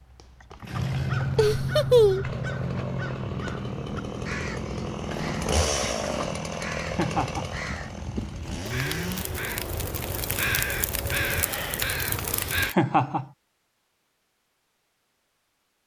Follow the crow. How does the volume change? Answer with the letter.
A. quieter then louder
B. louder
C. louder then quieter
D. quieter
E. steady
A.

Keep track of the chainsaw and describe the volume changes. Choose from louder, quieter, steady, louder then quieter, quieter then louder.
louder then quieter.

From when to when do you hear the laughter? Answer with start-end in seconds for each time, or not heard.
1.4-2.3, 6.8-7.5, 12.7-13.2.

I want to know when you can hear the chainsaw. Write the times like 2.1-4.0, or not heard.
0.0-10.2.